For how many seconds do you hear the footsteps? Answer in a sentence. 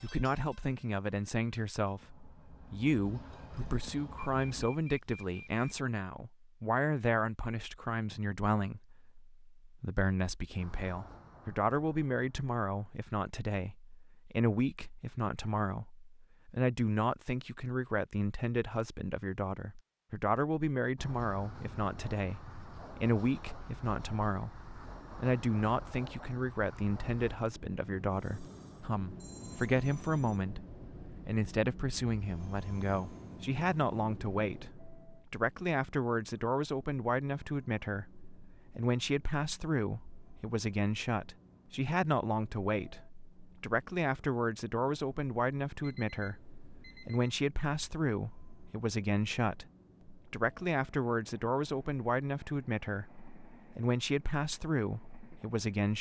You can't hear the footsteps here.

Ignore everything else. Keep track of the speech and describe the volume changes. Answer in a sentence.
The volume of the speech stays about the same.